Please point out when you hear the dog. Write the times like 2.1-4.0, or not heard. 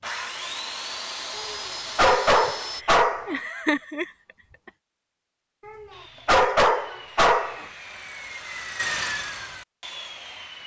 1.4-3.4, 5.7-7.7.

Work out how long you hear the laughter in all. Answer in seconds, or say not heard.
2 s.